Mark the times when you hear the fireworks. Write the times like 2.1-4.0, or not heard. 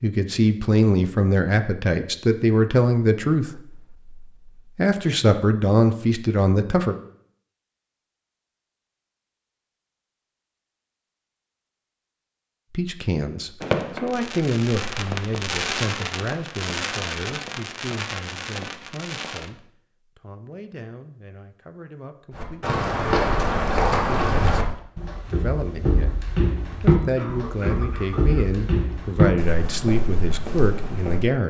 13.6-19.5.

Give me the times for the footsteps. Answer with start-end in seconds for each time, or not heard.
22.4-31.3.